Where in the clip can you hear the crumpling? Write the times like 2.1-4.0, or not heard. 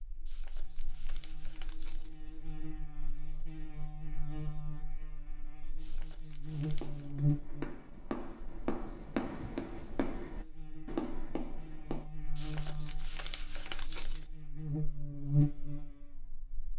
0.2-2.2, 5.8-7.2, 12.3-14.3.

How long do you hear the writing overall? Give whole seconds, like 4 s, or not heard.
6 s.